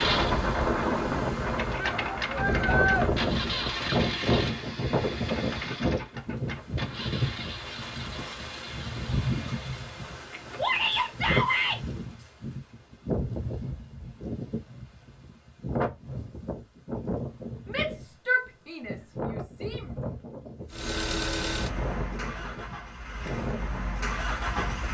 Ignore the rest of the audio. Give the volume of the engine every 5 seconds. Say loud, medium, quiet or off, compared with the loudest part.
loud, medium, off, off, loud.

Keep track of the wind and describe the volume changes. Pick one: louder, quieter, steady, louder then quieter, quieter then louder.
quieter.